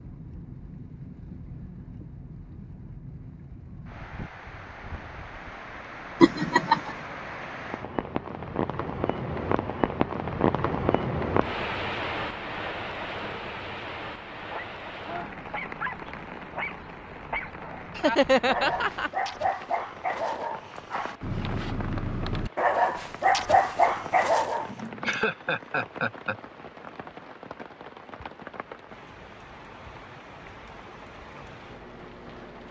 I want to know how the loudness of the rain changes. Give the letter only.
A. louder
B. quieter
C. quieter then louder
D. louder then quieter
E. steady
D.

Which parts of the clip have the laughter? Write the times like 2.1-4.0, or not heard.
6.2-6.9, 17.9-19.1, 24.6-26.4.